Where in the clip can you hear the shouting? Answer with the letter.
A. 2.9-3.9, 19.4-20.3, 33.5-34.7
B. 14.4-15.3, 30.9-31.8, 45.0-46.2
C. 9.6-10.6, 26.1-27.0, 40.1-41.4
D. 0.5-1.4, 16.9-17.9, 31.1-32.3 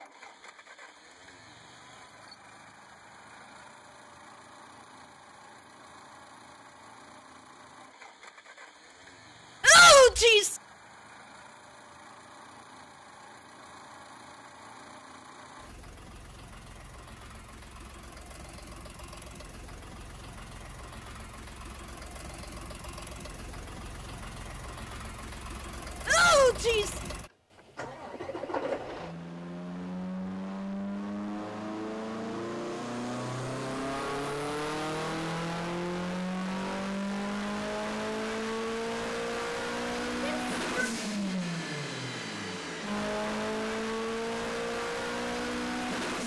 C.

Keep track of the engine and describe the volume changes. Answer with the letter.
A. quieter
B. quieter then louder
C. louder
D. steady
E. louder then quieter
C.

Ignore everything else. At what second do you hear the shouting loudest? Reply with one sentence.
The volume of the shouting peaks at 10 seconds.